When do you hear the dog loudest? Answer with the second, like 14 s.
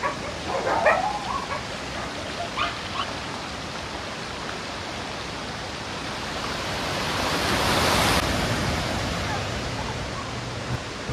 1 s.